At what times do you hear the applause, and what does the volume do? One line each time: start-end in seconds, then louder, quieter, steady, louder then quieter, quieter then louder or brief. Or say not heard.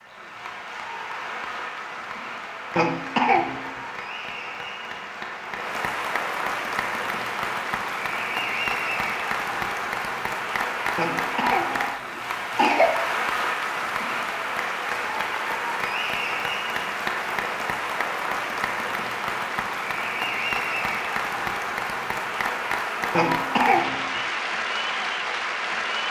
0.0-26.0 louder.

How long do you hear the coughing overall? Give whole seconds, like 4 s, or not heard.
4 s.